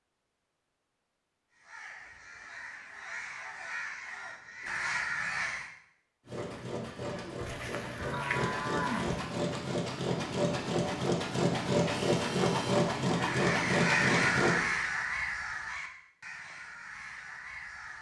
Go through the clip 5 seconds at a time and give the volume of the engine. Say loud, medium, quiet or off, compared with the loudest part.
off, medium, loud, off.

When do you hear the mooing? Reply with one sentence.
The mooing can be heard from 7.3 to 9.3 s.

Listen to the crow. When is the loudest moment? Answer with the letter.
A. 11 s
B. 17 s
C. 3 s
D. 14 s
D.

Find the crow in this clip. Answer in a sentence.
You can hear the crow from 1.5 to 5.7 s and from 13.1 to 17.9 s.